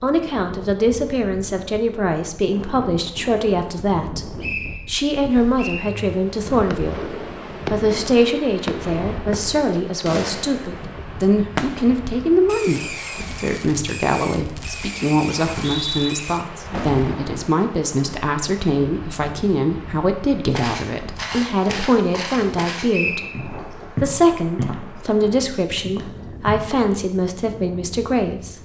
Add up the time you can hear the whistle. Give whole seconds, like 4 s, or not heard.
3 s.